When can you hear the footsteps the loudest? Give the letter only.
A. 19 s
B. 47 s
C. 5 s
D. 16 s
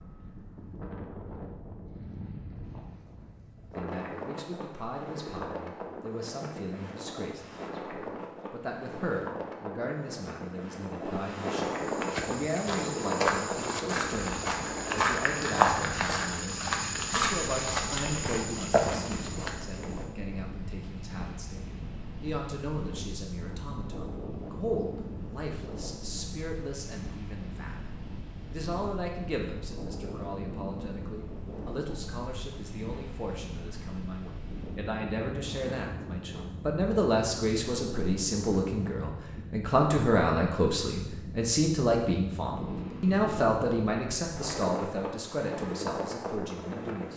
D.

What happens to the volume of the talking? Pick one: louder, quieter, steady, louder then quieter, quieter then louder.
louder.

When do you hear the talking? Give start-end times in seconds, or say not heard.
3.8-47.1.